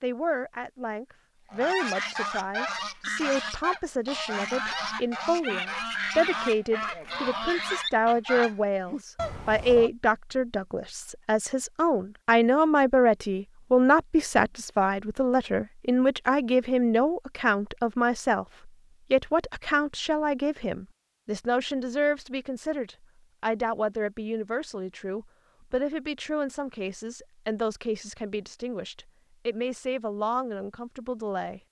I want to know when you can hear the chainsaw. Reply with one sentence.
The chainsaw can't be heard in this clip.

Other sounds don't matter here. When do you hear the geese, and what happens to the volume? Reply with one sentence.
The geese can be heard from 1.5 to 9.9 s, at a steady volume.